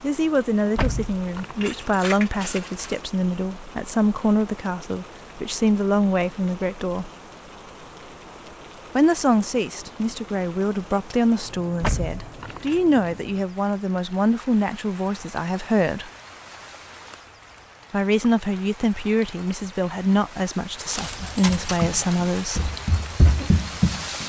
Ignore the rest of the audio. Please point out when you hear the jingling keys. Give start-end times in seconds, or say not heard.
0.8-3.0, 11.8-12.8, 21.2-21.8.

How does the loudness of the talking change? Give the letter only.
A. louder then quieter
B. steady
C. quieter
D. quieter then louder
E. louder
B.